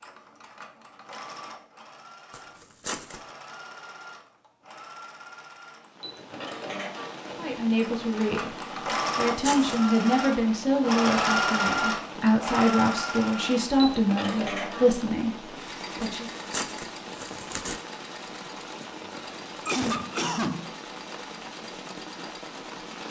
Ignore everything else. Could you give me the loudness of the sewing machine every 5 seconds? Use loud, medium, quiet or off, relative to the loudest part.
quiet, medium, loud, quiet, quiet.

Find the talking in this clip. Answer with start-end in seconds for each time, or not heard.
7.3-16.3.